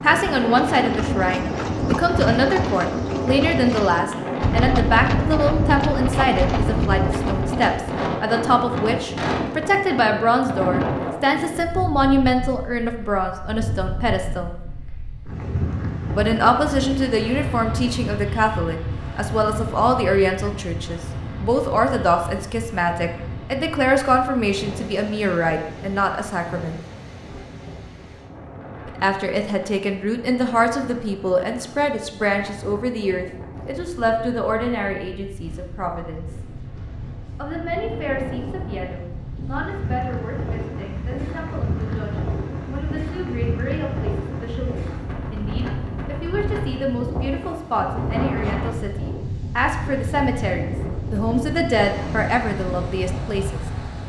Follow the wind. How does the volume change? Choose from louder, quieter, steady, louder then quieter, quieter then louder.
quieter then louder.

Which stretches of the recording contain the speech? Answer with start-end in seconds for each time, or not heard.
0.0-14.5, 16.1-26.8, 28.9-36.4, 37.4-53.6.